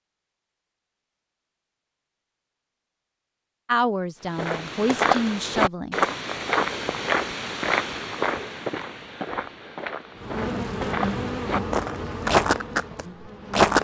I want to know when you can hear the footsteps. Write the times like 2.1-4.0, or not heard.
4.3-13.8.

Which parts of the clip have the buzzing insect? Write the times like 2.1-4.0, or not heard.
10.2-13.8.